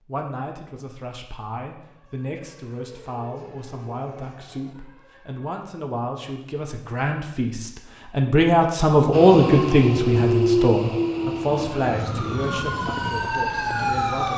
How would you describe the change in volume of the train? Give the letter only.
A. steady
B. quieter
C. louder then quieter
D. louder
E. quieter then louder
B.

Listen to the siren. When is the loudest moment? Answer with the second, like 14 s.
14 s.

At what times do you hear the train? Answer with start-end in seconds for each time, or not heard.
9.1-14.1.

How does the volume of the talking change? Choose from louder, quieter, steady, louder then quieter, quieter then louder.
louder then quieter.